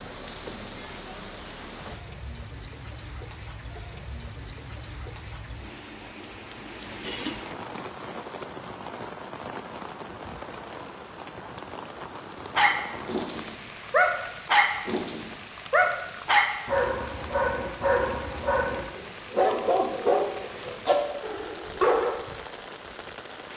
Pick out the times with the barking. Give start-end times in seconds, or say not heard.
12.6-22.1.